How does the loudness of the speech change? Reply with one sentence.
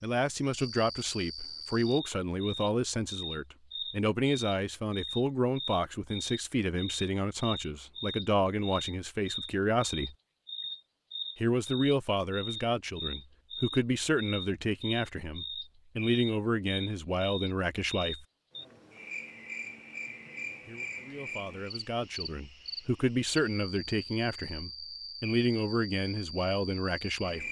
The volume of the speech stays about the same.